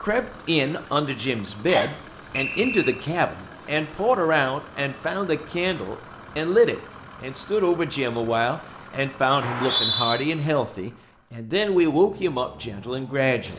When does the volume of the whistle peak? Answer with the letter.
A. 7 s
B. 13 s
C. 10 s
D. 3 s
C.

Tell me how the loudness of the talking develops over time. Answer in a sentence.
The volume of the talking stays about the same.